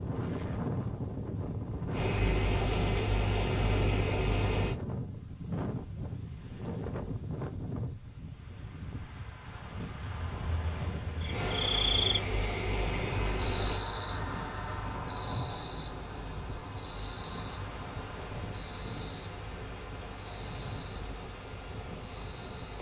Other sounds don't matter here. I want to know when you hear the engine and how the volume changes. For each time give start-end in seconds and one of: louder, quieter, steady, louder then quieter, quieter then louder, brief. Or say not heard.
1.9-4.8 brief
11.3-22.7 quieter.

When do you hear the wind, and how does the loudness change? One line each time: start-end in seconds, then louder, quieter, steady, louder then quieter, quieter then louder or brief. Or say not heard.
0.0-22.7 quieter.